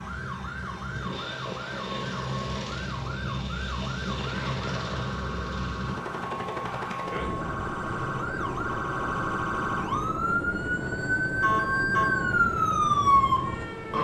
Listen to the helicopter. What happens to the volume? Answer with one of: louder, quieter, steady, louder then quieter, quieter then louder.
steady.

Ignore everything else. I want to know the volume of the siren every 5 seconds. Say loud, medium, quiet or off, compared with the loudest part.
quiet, medium, loud.